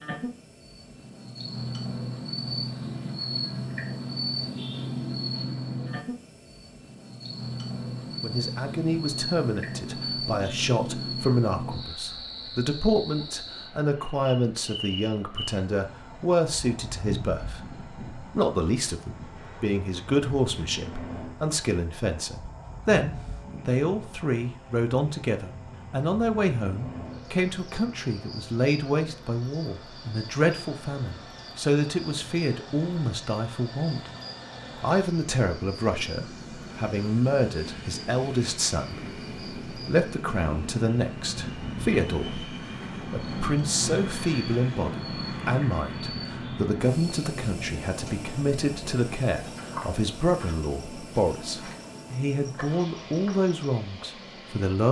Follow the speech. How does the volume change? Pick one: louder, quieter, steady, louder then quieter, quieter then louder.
steady.